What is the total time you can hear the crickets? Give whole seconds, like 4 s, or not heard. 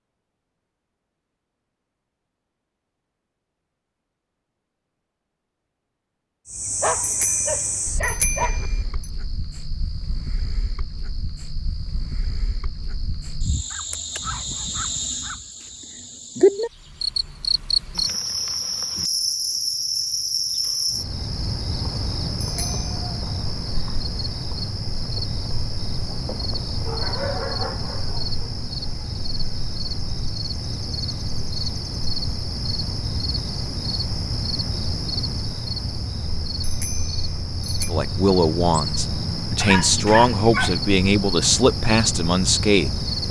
37 s.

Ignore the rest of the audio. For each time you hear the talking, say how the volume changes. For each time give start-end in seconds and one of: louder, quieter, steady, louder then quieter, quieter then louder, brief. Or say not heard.
37.9-43.2 steady.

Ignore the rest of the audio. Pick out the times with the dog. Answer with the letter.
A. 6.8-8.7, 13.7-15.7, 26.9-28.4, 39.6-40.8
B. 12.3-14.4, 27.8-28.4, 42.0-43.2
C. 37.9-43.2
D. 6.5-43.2
A.